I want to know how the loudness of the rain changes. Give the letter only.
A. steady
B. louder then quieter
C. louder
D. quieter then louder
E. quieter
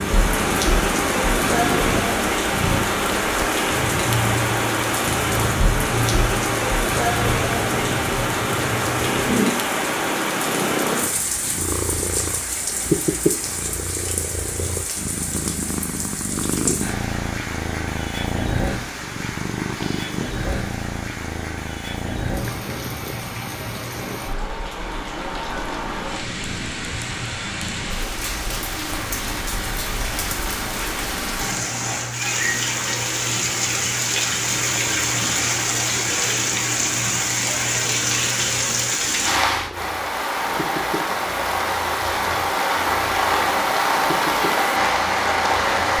D.